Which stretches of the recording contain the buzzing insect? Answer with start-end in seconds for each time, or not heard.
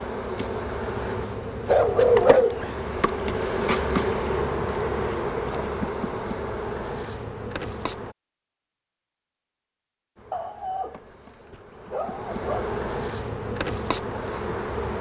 0.0-8.2, 10.2-14.9.